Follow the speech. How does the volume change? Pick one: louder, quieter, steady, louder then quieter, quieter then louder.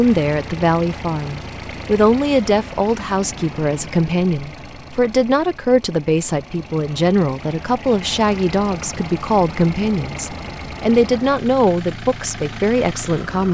steady.